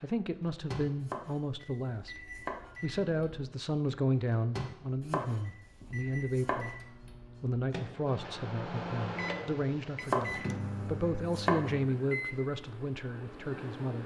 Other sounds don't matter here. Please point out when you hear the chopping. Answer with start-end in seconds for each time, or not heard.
1.0-2.7, 5.0-6.7, 10.1-11.7.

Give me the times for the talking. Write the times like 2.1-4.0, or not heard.
0.0-2.2, 2.8-6.8, 7.4-14.0.